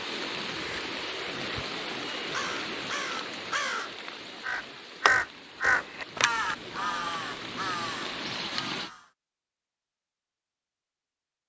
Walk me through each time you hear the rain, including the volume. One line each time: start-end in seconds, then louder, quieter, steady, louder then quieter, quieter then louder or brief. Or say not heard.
0.0-8.9 quieter then louder.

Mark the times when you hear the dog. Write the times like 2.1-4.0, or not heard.
not heard.